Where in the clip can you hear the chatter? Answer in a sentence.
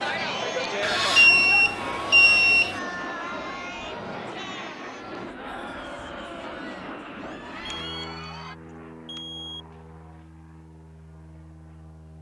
The chatter can be heard from 0.0 to 8.6 s.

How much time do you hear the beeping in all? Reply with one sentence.
The beeping can be heard for 3 seconds in total.